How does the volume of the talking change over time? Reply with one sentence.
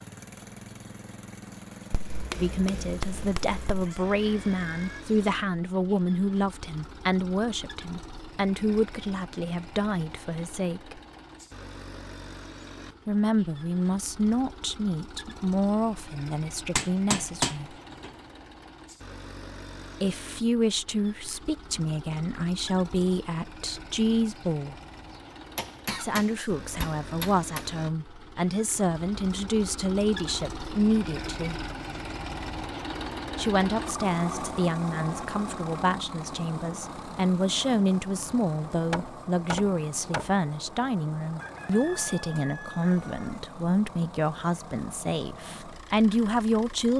The loudness of the talking stays about the same.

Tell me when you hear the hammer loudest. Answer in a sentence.
The volume of the hammer peaks at 17 seconds.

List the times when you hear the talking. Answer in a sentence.
You can hear the talking from 2.3 to 11.0 s, from 13.1 to 17.7 s, from 20.0 to 24.8 s, from 25.9 to 31.6 s and from 33.4 to 46.9 s.